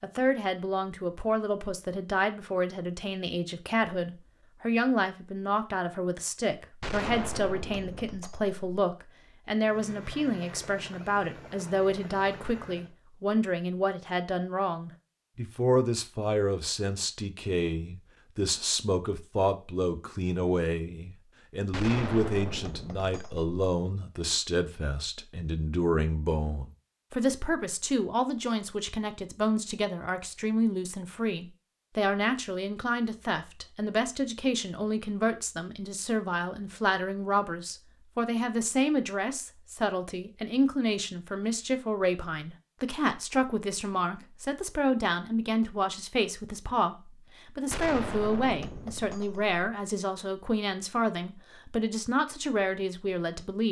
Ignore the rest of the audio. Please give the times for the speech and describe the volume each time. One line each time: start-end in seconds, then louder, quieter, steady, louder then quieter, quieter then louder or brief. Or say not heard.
0.0-53.6 steady.